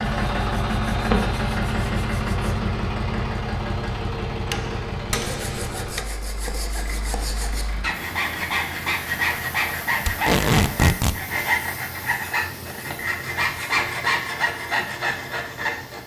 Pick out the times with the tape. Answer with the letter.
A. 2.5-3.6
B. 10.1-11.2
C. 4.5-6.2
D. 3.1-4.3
B.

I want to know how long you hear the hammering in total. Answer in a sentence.
The hammering can be heard for 2 seconds in total.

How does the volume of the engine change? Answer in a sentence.
The volume of the engine goes down.